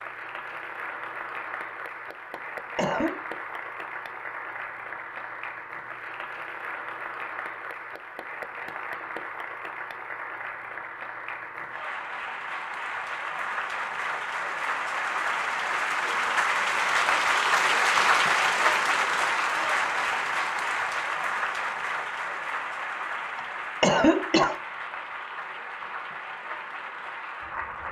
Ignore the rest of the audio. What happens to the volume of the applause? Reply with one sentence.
The volume of the applause goes up, then down.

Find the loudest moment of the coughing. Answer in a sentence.
The volume of the coughing peaks at 24 seconds.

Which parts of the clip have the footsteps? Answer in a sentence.
The footsteps can't be heard in this clip.